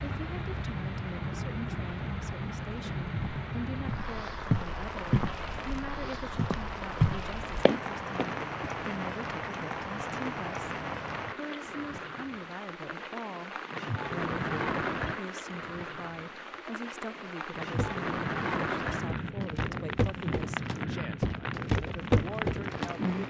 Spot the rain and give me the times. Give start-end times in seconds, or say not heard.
0.0-23.2.